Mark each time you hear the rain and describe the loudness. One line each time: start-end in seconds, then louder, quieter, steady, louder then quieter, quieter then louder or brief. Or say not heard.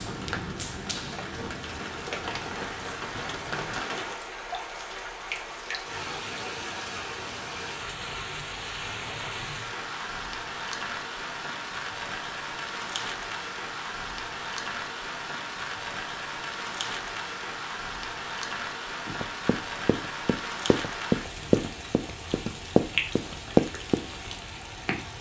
0.0-25.1 steady.